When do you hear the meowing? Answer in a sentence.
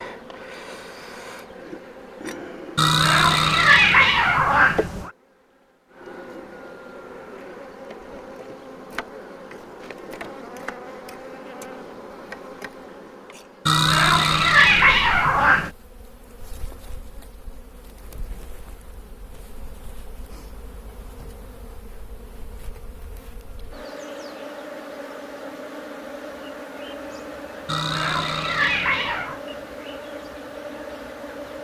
You can hear the meowing from 2.8 to 5.1 s, from 13.7 to 15.7 s and from 27.6 to 29.4 s.